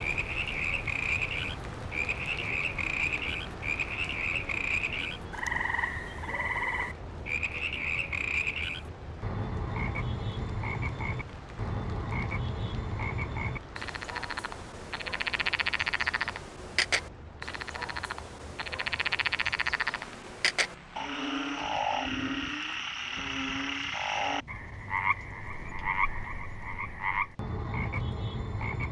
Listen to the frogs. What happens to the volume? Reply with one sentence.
The loudness of the frogs stays about the same.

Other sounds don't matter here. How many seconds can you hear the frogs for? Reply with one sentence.
The frogs can be heard for 29 seconds in total.